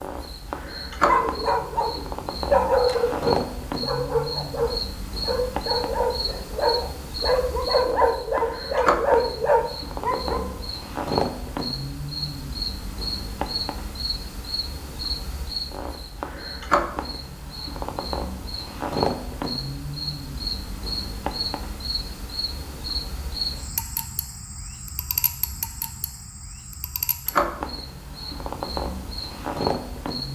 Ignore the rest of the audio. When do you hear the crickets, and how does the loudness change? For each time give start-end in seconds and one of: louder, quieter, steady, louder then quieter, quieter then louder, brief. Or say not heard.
0.0-30.3 steady.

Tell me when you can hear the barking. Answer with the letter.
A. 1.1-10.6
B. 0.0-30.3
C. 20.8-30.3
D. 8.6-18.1
A.